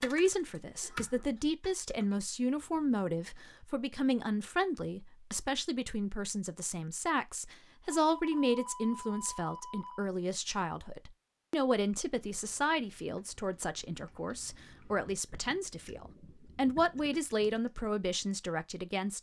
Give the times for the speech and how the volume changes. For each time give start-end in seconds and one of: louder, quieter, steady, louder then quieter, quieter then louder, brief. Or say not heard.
0.0-19.1 steady.